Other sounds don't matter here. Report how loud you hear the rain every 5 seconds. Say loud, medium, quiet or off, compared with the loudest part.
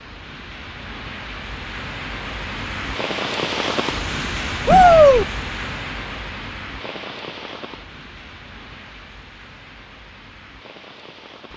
loud, medium, quiet.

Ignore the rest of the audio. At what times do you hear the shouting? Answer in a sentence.
You can hear the shouting from 4.7 to 5.2 s.